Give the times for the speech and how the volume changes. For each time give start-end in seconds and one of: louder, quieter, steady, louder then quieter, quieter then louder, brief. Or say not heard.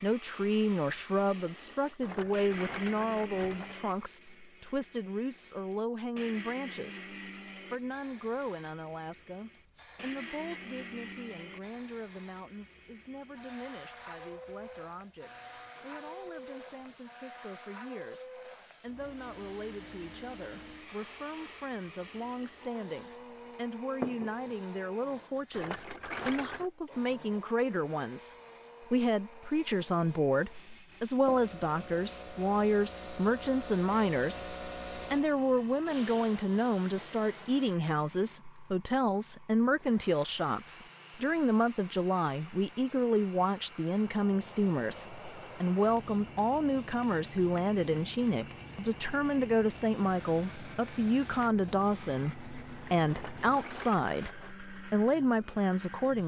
0.0-56.2 quieter then louder.